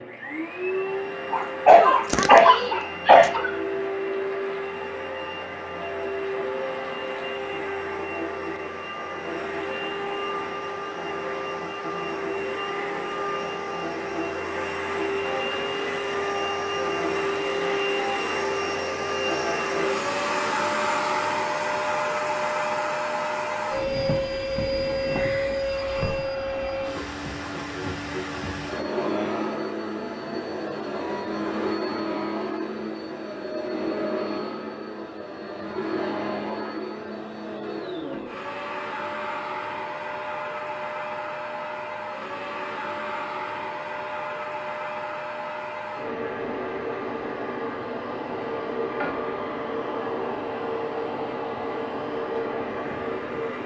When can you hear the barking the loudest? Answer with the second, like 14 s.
2 s.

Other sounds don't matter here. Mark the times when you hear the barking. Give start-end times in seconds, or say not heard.
1.3-3.5.